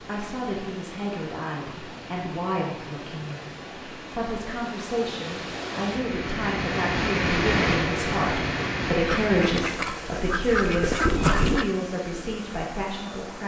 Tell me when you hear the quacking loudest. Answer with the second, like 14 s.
11 s.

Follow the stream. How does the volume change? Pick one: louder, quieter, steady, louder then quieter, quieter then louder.
louder then quieter.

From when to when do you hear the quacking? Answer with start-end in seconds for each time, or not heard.
9.1-11.7.